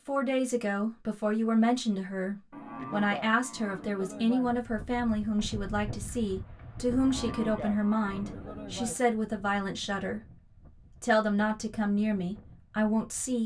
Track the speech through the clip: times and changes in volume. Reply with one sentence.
You can hear the speech from 0.1 to 10.2 s, at a steady volume; and briefly from 11.0 to 13.4 s.